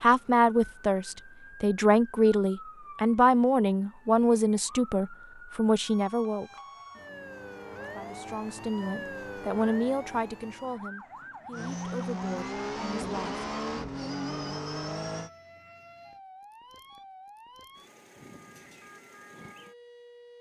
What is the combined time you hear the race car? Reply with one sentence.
The race car can be heard for 4 seconds in total.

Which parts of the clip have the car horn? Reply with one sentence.
You can't hear the car horn here.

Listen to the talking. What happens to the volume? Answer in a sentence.
The volume of the talking goes down.